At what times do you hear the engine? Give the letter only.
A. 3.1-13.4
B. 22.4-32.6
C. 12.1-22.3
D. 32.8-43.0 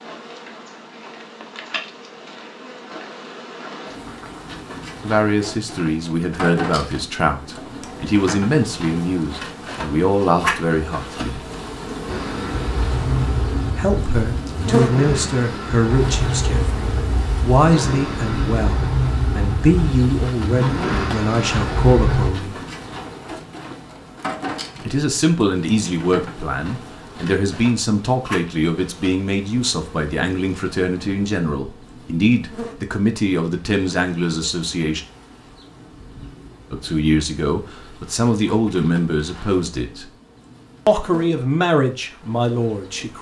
C.